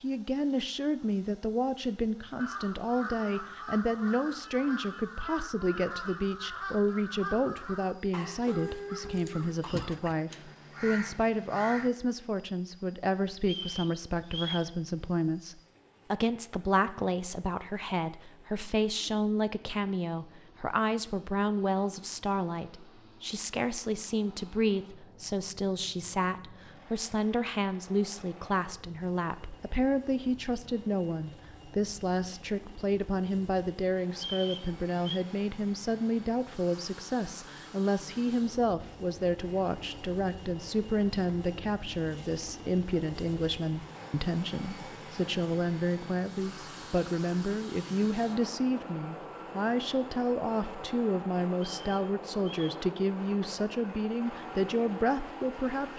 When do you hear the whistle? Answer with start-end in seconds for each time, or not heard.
13.4-14.7, 34.1-35.2, 51.7-52.9.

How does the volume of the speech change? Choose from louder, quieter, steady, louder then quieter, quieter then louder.
steady.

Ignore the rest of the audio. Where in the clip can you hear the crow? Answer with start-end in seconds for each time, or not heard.
2.4-11.9.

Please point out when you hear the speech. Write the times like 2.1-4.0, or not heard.
0.0-55.9.